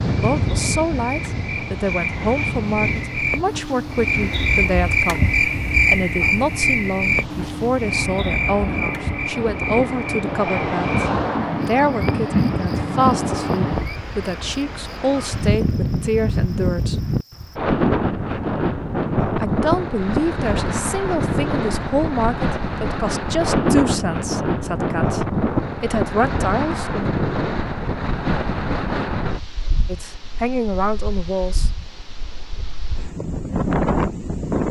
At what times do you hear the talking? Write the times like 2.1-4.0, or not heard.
0.0-16.9, 19.4-27.1, 29.9-31.7.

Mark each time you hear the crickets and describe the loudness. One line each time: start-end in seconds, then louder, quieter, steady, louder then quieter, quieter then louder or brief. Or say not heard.
0.1-17.6 louder then quieter.